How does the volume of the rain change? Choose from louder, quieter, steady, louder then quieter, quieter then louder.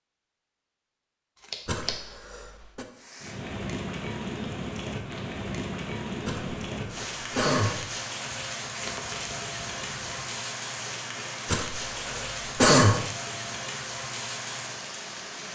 steady.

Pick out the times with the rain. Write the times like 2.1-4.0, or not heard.
3.0-15.5.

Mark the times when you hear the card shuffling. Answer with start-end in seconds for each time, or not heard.
1.4-1.9, 8.8-10.3.